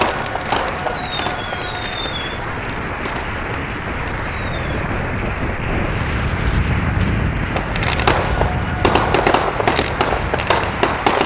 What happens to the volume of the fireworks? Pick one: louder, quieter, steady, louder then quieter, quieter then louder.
quieter then louder.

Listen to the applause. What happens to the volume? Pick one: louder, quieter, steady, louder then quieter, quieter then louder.
steady.